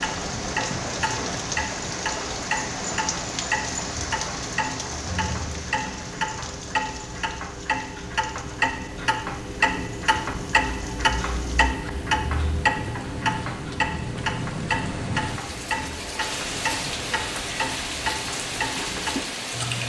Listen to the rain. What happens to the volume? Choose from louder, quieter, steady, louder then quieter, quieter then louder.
quieter then louder.